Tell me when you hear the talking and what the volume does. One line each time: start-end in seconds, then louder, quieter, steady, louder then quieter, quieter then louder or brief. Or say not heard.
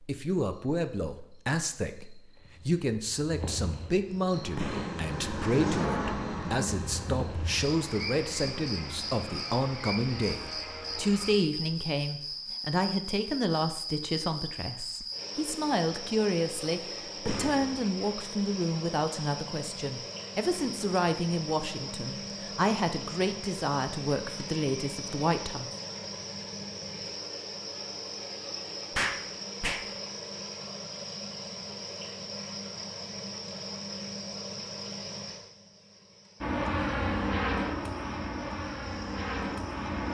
0.0-25.7 steady.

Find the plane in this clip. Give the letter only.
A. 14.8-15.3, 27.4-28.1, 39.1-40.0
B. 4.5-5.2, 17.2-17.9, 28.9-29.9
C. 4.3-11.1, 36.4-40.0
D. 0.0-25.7
C.